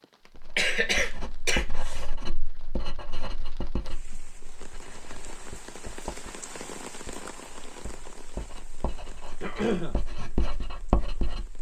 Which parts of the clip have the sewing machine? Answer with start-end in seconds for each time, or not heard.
not heard.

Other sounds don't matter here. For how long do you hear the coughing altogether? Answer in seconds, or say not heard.
2 s.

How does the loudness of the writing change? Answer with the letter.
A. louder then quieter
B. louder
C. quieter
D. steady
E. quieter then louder
E.